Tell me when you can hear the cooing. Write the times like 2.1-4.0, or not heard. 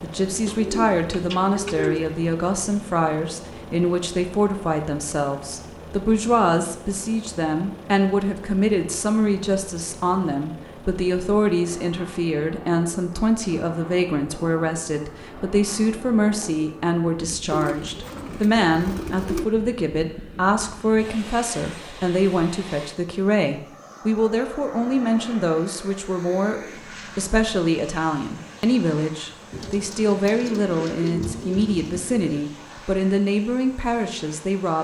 0.5-2.1, 17.4-19.4, 29.5-32.3.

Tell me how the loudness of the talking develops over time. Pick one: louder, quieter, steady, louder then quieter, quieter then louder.
steady.